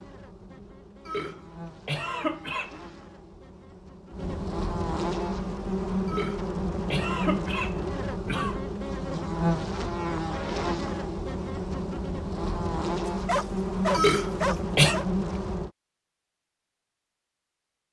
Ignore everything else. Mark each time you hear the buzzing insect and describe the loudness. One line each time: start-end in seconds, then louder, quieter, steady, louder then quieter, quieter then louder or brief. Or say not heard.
0.0-15.7 louder.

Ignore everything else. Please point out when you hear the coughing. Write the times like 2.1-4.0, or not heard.
1.1-2.9, 6.0-8.6, 13.9-14.9.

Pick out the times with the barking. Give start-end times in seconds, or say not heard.
13.1-15.1.